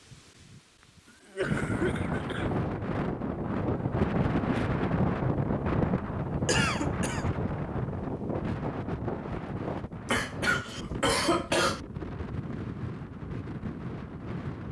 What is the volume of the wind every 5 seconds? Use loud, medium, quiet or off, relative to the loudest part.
loud, loud, medium.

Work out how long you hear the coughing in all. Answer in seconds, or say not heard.
4 s.